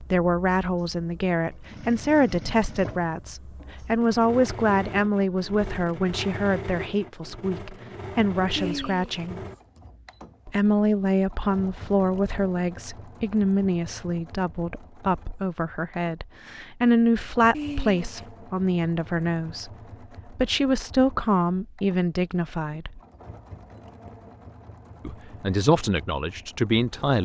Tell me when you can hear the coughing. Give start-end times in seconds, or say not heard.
8.6-9.3, 17.5-18.2.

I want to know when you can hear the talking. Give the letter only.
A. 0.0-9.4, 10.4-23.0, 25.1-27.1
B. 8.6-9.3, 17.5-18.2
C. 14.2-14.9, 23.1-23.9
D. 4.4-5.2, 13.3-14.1
A.